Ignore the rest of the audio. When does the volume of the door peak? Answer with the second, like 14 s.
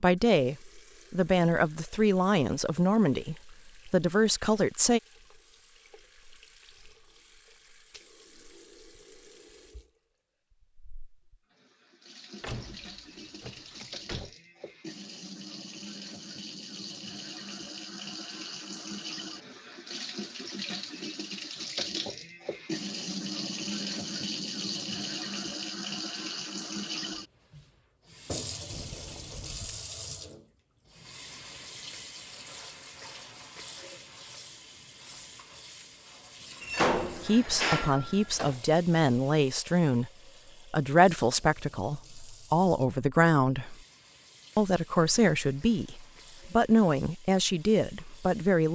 37 s.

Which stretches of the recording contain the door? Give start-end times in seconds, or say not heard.
12.4-14.3, 28.7-29.9, 36.6-38.6.